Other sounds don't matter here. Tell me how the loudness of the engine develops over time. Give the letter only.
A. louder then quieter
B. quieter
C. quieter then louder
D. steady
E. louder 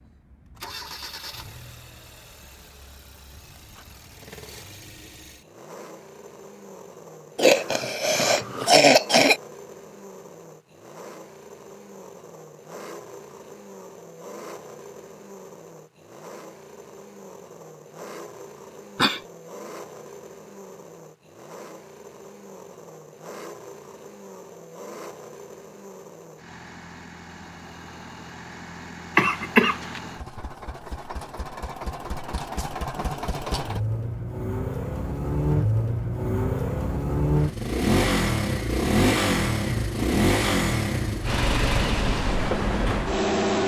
E.